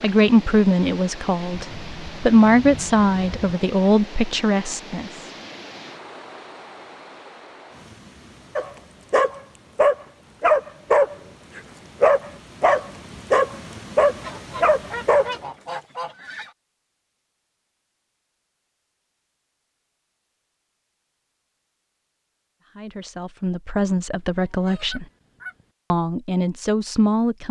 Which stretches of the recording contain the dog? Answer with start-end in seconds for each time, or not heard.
8.6-15.8.